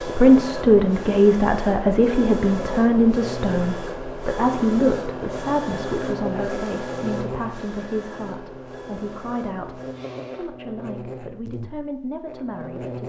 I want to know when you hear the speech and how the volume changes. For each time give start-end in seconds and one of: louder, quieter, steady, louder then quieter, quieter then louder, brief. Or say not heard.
0.0-13.0 quieter.